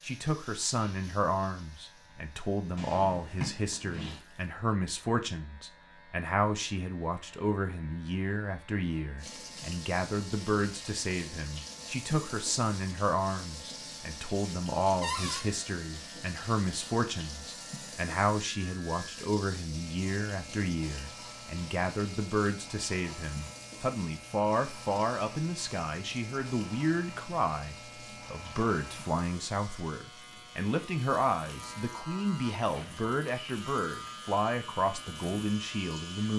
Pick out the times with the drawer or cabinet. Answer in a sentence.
You can hear the drawer or cabinet from 2.8 to 4.2 s, from 15.0 to 15.4 s and from 32.6 to 33.1 s.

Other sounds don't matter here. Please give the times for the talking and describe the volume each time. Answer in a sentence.
You can hear the talking from 0.0 to 36.3 s, at a steady volume.